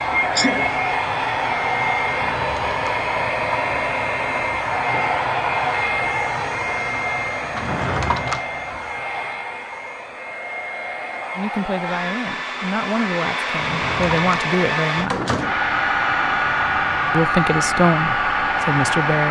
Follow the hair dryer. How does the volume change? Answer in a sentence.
The volume of the hair dryer goes down, then up.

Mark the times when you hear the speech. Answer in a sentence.
The speech can be heard from 11.3 to 15.2 s and from 17.1 to 19.2 s.